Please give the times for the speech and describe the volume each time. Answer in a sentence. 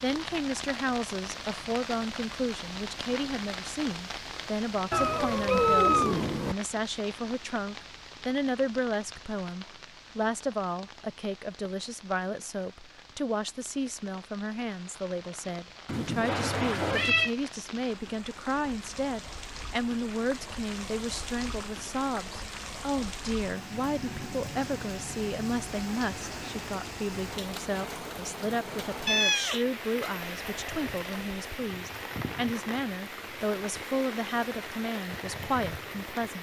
You can hear the speech from 0.0 to 36.3 s, at a steady volume.